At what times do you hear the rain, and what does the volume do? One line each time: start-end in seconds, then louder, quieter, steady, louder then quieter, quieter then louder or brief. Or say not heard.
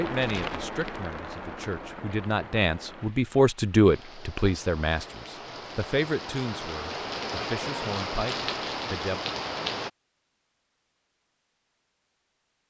0.0-9.9 quieter then louder.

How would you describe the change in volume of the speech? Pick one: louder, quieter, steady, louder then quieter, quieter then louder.
louder then quieter.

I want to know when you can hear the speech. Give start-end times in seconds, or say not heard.
0.0-9.2.